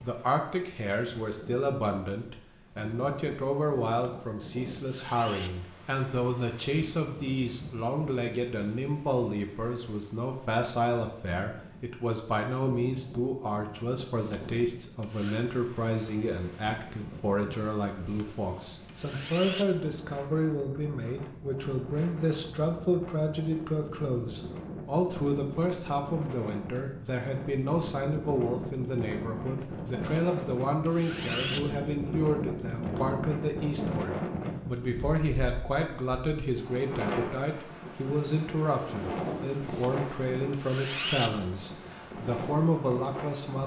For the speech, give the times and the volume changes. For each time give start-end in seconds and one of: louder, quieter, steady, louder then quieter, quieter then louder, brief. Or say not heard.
0.0-43.6 steady.